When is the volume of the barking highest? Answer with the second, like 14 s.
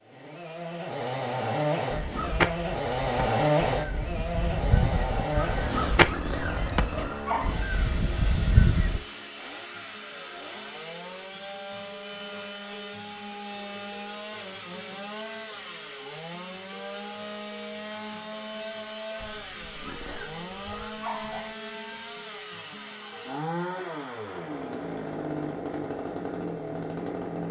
7 s.